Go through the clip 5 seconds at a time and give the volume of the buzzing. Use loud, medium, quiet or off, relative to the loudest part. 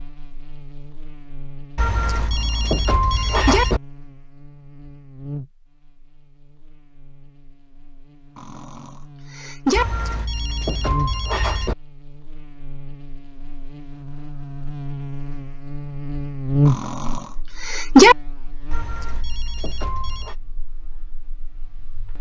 quiet, quiet, medium, loud, quiet.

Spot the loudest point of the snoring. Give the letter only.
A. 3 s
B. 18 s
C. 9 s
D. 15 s
B.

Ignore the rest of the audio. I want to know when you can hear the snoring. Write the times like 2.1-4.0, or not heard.
2.1-3.6, 8.3-9.8, 16.6-18.1.